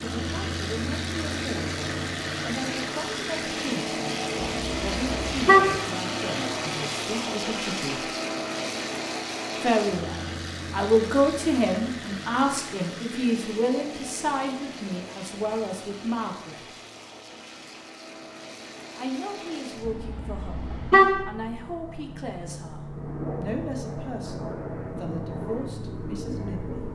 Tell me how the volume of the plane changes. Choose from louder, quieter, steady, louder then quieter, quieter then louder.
quieter then louder.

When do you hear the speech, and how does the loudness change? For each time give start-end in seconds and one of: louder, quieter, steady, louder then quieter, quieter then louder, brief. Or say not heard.
0.0-8.1 steady
9.6-16.6 quieter
18.9-26.8 steady.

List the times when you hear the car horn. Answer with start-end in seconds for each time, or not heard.
4.6-5.8, 19.9-21.2.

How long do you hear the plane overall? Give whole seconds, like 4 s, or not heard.
27 s.